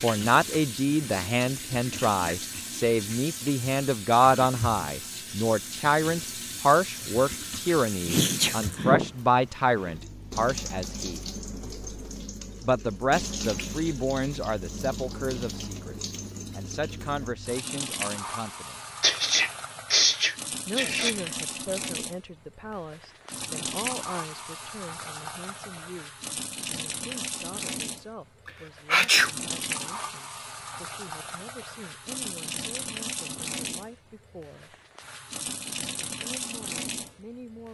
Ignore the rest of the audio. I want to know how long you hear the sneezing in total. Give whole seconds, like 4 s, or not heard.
4 s.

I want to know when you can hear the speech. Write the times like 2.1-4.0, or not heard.
0.0-11.2, 12.6-18.8, 20.6-34.8, 36.0-37.6.